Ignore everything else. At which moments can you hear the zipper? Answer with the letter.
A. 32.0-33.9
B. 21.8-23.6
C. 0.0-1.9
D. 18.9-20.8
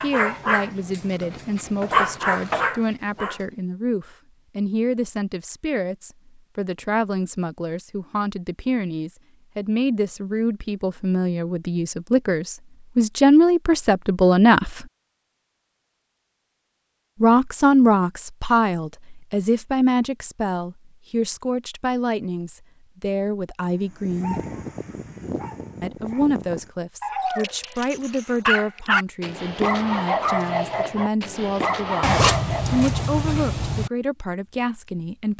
A.